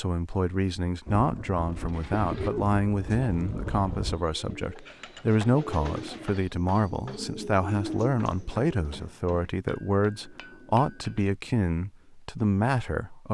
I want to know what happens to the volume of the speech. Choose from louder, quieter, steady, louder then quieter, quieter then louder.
steady.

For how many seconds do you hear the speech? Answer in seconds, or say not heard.
13 s.